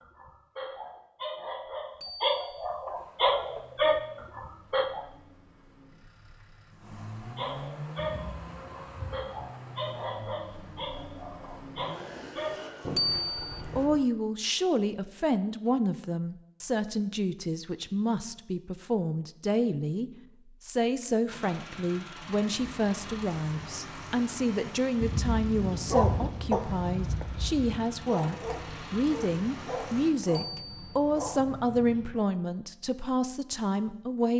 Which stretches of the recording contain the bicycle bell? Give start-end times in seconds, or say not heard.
2.0-2.6, 12.9-13.6, 30.3-31.0.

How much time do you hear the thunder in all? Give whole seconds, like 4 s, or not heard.
3 s.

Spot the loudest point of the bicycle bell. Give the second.
13 s.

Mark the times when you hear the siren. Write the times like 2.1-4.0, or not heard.
not heard.